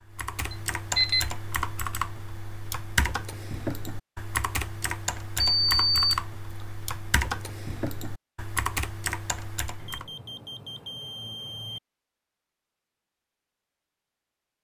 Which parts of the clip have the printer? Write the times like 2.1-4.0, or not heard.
not heard.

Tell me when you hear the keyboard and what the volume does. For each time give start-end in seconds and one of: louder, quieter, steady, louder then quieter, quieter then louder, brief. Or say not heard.
0.1-10.1 steady.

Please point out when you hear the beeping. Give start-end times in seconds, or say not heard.
0.5-1.2, 5.4-6.7, 9.8-11.8.